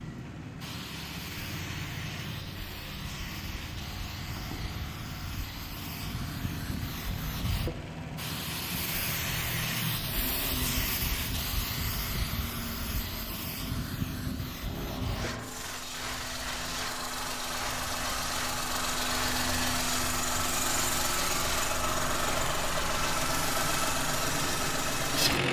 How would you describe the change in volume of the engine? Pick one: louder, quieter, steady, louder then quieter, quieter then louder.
louder.